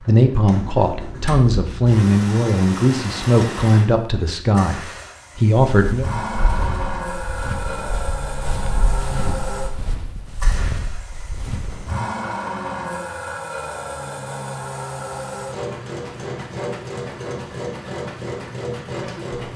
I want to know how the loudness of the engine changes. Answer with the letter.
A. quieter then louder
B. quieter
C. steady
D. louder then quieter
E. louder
C.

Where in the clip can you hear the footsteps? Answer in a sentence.
The footsteps can be heard from 5.7 to 11.9 s.